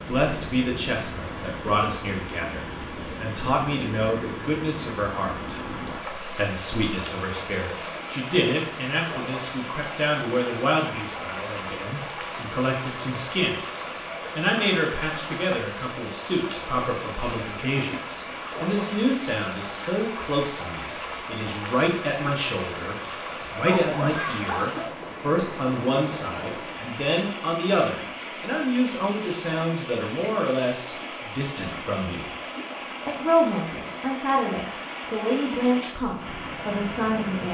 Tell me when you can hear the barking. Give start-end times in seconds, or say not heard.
23.5-24.9.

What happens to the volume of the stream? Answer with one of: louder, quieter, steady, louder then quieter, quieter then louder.
steady.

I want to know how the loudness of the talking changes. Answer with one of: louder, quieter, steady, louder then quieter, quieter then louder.
steady.